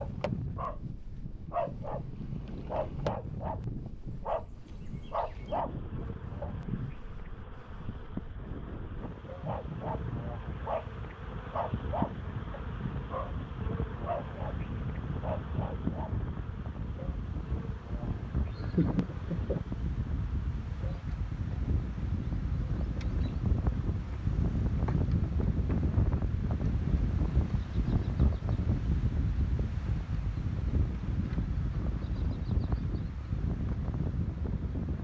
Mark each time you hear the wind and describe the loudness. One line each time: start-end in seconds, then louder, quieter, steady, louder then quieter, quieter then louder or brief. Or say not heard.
0.0-35.0 louder.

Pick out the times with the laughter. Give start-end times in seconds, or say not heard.
18.5-19.6.